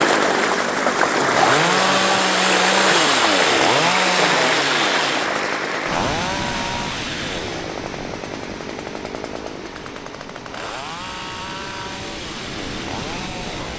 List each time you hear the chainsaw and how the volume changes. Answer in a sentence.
You can hear the chainsaw from 0.0 to 13.7 s, getting quieter.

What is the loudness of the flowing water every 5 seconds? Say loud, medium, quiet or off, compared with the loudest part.
loud, medium, quiet.